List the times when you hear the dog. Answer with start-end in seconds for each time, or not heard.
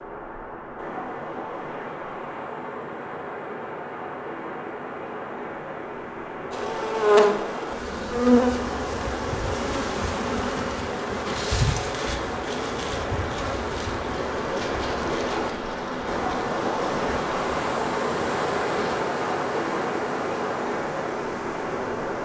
not heard.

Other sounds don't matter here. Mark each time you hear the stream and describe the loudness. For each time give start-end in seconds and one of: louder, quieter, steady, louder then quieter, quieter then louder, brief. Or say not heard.
0.0-22.2 louder.